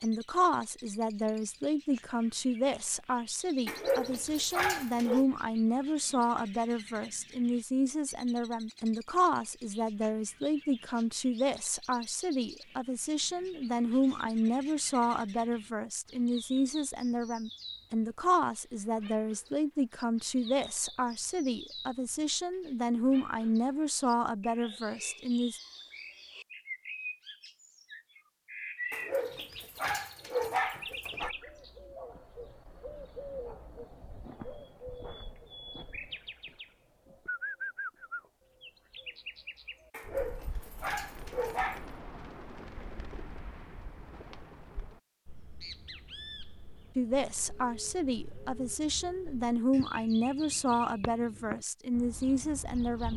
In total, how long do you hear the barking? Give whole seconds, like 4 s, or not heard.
6 s.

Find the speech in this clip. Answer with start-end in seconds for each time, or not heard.
0.0-25.6, 47.0-53.1.